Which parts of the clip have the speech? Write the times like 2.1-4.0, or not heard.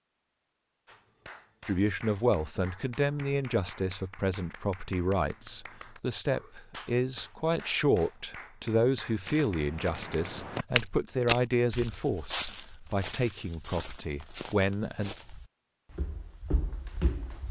1.6-15.2.